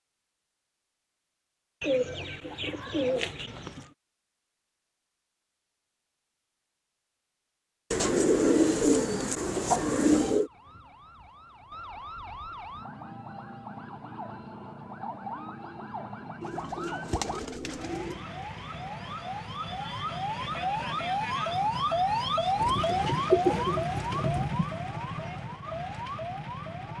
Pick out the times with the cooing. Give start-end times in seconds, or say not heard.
1.8-3.9, 7.9-10.5, 16.4-18.2, 22.6-24.7.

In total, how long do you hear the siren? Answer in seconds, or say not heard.
17 s.